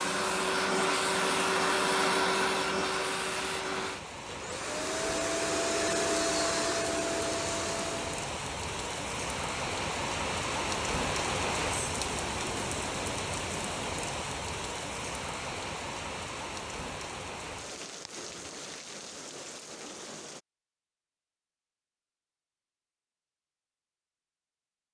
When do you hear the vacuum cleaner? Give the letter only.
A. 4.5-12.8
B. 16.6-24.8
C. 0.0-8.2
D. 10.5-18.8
C.